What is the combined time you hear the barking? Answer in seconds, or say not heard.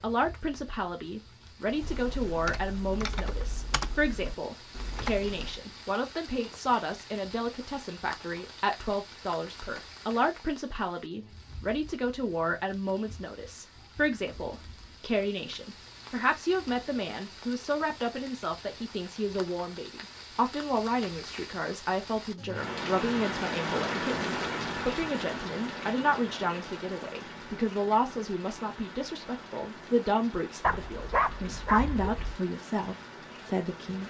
2 s.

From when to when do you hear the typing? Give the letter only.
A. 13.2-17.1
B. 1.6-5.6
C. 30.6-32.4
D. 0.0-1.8
B.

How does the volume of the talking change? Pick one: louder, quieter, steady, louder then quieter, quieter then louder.
steady.